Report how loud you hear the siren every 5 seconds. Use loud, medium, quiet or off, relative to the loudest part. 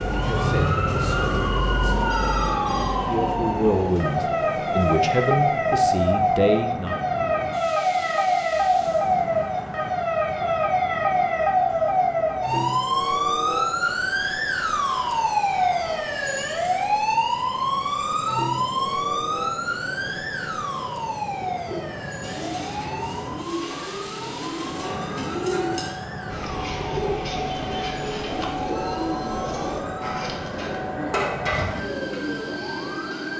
loud, loud, loud, loud, medium, quiet, quiet.